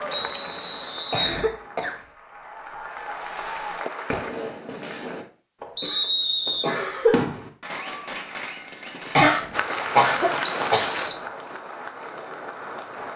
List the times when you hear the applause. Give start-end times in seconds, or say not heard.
0.0-4.3, 9.5-13.1.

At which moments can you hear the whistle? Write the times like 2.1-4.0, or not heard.
0.1-1.4, 5.8-7.2, 10.4-11.2.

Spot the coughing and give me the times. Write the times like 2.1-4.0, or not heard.
0.5-1.9, 5.8-7.2, 9.2-10.9.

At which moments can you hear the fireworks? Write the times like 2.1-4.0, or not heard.
4.0-9.3.